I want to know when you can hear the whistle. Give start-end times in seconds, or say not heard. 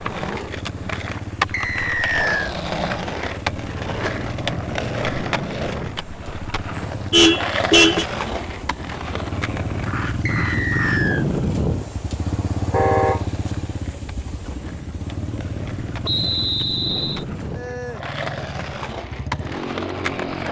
1.5-2.5, 10.2-11.2, 16.1-17.2.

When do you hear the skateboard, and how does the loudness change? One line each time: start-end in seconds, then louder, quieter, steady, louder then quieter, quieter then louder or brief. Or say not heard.
0.0-20.4 quieter then louder.